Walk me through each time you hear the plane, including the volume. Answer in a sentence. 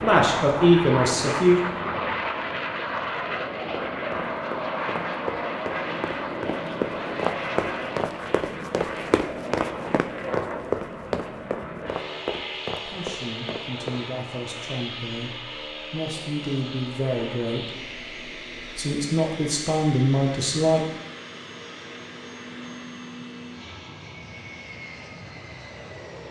You can hear the plane from 0.0 to 26.2 s, getting quieter.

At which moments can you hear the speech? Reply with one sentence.
You can hear the speech from 0.0 to 1.6 s and from 12.8 to 20.9 s.